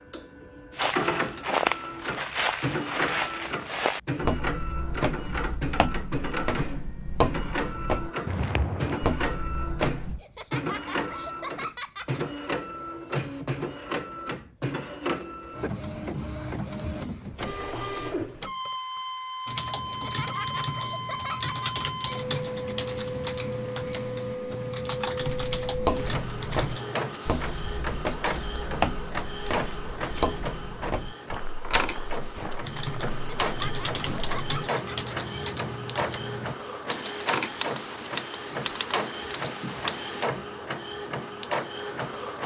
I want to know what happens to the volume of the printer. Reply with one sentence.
The volume of the printer stays about the same.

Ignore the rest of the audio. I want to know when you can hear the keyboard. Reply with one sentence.
You can hear the keyboard from 19.4 to 27.2 s and from 32.6 to 40.3 s.